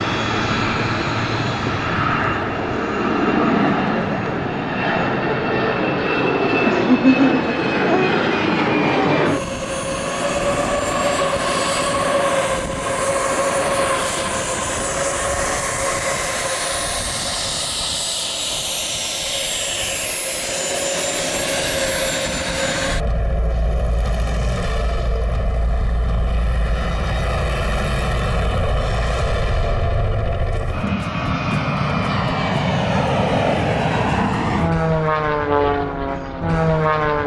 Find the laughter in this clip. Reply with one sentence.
The laughter can be heard from 6.7 to 8.2 s.